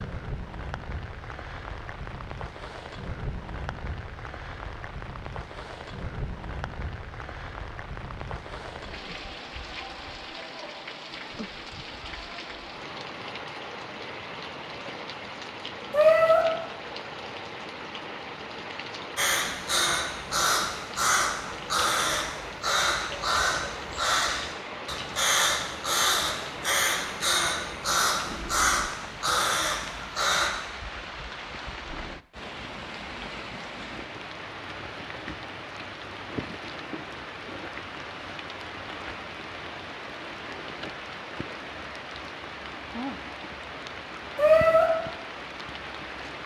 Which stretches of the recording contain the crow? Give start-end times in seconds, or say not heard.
19.1-30.5.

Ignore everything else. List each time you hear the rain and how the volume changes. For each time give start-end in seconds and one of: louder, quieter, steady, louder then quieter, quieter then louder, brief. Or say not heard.
0.0-46.4 steady.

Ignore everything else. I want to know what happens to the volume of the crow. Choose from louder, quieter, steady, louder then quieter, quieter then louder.
steady.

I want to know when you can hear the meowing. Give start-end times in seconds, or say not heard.
15.9-16.4, 44.4-44.9.